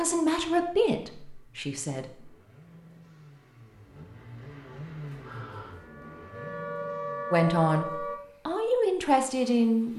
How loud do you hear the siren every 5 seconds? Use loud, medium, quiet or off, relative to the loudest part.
off, loud.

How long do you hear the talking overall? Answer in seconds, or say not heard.
5 s.